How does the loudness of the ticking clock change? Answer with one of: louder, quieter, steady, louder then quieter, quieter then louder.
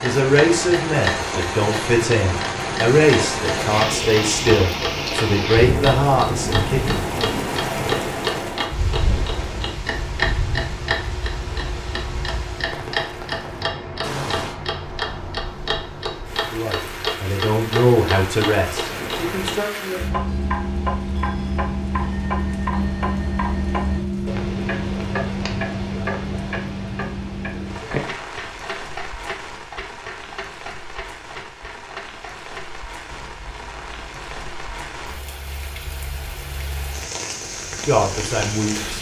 quieter.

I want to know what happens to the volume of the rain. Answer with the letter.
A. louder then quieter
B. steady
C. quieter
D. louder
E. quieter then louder
C.